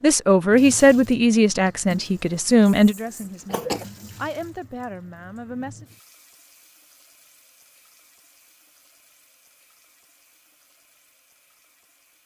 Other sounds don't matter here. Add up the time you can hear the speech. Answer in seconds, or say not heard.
6 s.